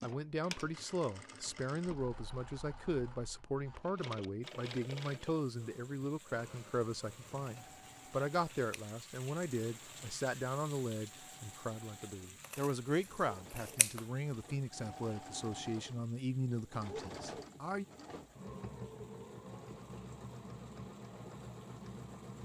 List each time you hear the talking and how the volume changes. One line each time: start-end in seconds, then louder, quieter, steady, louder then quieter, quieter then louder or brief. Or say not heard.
0.0-17.9 steady.